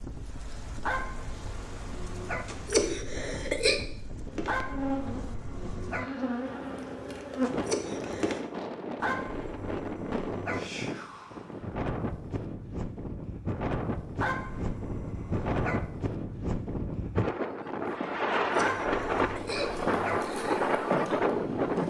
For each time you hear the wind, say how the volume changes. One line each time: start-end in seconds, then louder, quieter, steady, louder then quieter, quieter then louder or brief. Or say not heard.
0.0-21.8 louder.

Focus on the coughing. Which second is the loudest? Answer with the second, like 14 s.
3 s.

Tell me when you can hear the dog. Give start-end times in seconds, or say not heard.
0.8-2.5, 4.5-6.0, 8.9-10.6, 14.2-15.8, 18.6-20.2.